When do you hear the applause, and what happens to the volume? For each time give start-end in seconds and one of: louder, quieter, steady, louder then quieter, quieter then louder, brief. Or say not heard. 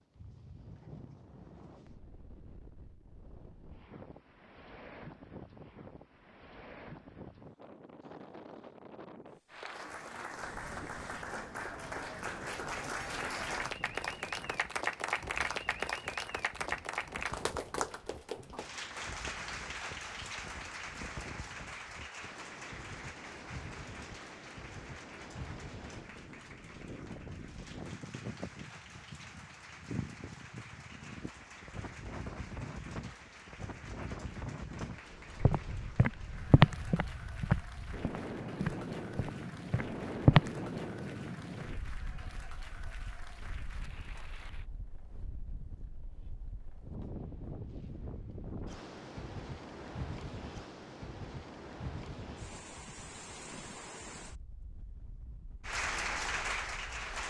9.4-44.6 quieter
55.6-57.2 brief.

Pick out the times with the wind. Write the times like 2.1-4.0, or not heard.
0.0-57.2.